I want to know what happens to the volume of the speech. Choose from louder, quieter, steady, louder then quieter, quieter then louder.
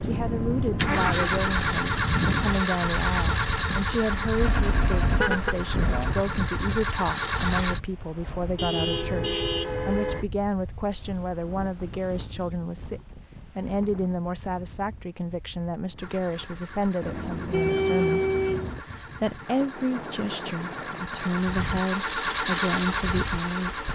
steady.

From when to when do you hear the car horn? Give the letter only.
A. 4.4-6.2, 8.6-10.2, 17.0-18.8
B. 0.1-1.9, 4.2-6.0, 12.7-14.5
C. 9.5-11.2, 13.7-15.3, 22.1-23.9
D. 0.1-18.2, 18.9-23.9
A.